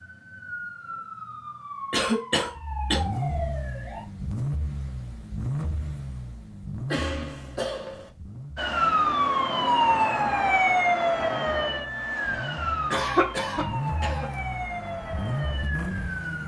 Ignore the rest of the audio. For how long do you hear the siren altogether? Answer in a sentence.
The siren can be heard for 12 seconds in total.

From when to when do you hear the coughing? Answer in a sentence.
The coughing can be heard from 1.9 to 3.0 s, from 6.8 to 8.1 s and from 12.9 to 14.2 s.